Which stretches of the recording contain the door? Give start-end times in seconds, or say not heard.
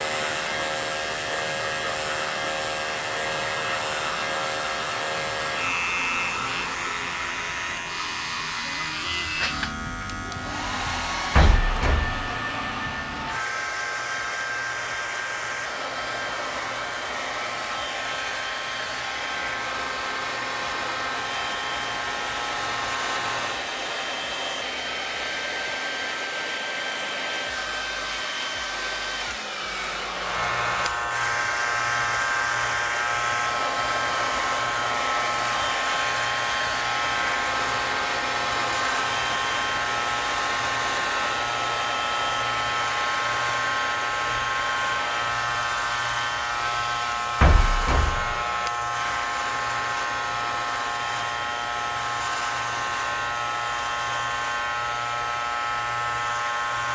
11.3-12.3, 47.4-48.4.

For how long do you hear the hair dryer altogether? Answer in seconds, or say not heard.
57 s.